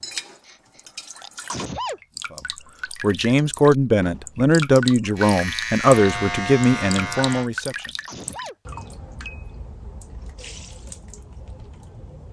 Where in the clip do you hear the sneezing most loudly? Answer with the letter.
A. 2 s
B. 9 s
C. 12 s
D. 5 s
A.